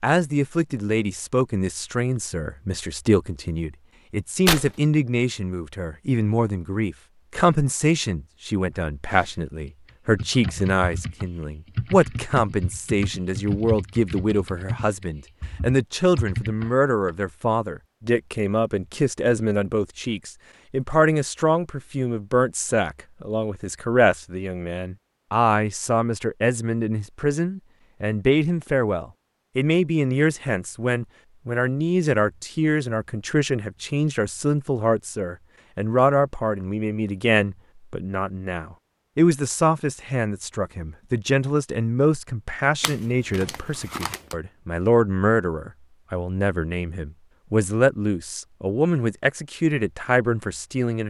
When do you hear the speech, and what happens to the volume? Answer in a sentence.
The speech can be heard from 0.0 to 51.0 s, at a steady volume.